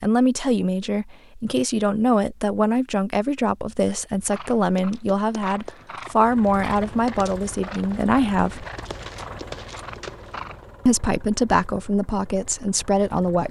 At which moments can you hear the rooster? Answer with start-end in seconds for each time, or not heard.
not heard.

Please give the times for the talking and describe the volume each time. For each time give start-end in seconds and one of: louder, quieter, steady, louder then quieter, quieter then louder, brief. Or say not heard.
0.0-8.7 steady
10.8-13.4 brief.